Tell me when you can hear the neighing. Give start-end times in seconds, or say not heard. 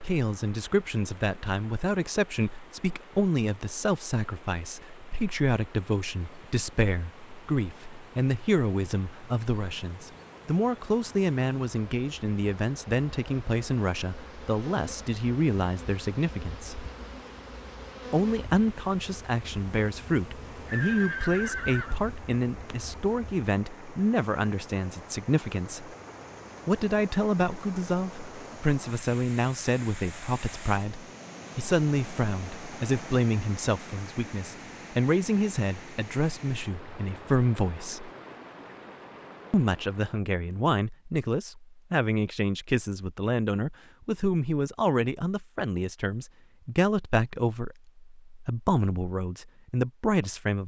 20.6-21.9.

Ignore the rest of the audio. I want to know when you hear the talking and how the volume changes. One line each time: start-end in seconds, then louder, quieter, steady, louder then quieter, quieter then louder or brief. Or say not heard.
0.0-16.9 steady
18.1-25.9 steady
26.6-38.1 steady
39.5-50.6 steady.